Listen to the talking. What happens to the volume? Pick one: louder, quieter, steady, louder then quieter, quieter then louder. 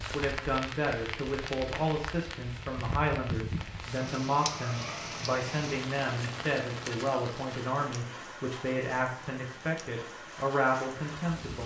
steady.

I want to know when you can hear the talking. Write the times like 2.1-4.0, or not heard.
0.0-11.6.